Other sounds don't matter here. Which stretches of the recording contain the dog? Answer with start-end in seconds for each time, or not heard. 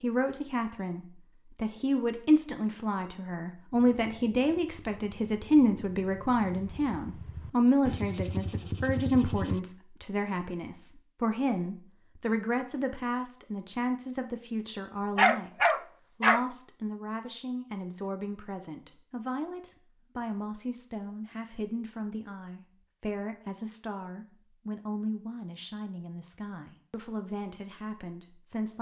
15.2-16.4.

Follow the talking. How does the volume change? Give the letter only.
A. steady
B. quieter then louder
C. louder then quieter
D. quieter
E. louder
D.